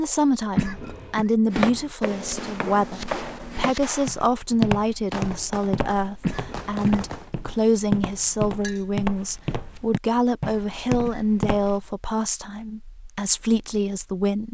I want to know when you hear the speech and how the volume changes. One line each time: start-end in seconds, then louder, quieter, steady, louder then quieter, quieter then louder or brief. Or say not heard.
0.0-14.4 steady.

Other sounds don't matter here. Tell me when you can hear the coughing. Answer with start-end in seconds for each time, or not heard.
0.6-1.2, 6.2-7.0, 10.4-11.5.